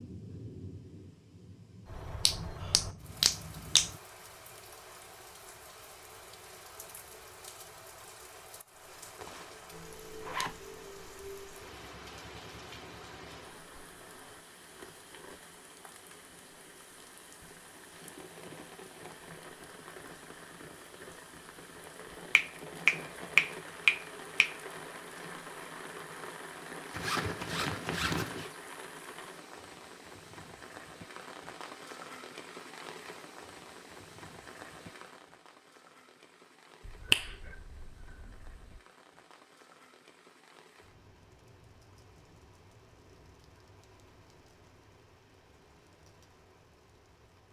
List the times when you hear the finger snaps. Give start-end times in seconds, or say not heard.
2.2-3.9, 22.4-24.6, 36.9-38.5.